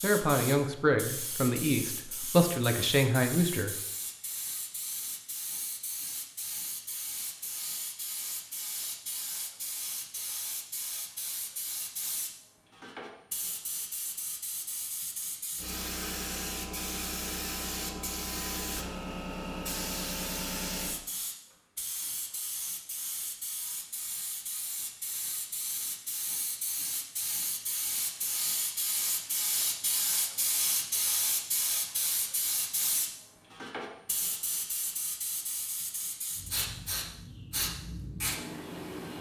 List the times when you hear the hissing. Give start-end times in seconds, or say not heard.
0.0-39.1.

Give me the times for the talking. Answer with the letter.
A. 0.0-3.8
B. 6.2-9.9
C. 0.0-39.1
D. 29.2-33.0
A.